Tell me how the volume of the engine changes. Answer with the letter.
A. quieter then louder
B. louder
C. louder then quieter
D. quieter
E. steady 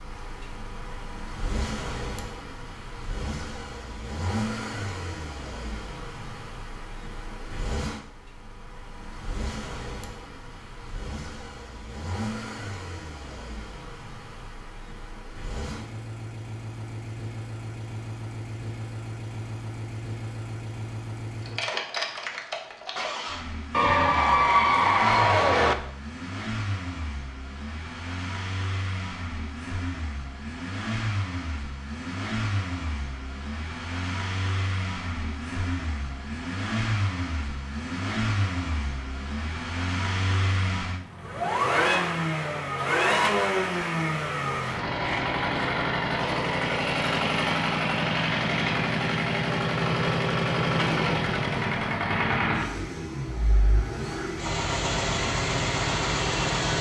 B.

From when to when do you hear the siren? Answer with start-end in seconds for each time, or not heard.
not heard.